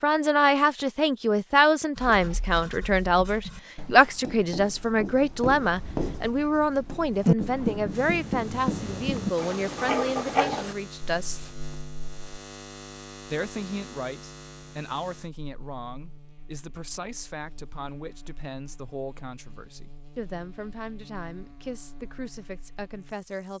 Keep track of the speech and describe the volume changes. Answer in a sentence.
The volume of the speech goes down.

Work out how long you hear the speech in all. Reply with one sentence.
The speech can be heard for 22 seconds in total.